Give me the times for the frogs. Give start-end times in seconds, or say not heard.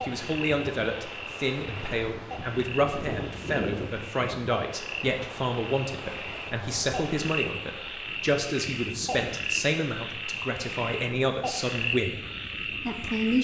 0.0-13.4.